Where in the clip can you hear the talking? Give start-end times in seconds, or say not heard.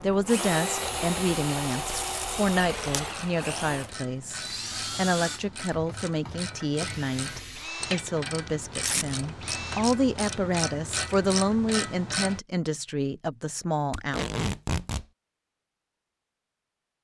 0.0-14.2.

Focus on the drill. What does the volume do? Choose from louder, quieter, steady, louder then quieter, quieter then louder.
quieter.